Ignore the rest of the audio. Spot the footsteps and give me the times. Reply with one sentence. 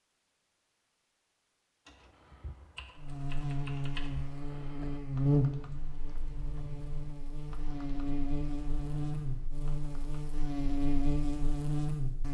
The footsteps can't be heard in this clip.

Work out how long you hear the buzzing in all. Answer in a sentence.
The buzzing can be heard for 9 seconds in total.